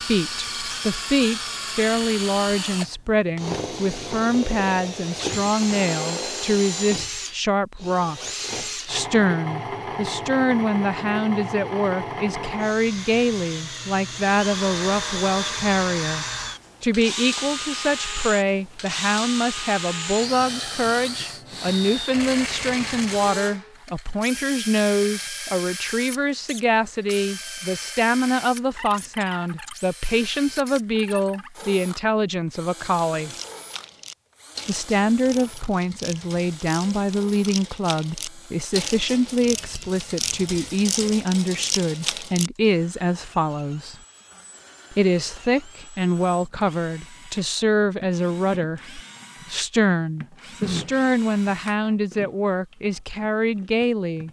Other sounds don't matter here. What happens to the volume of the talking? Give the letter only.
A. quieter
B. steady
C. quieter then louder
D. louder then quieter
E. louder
B.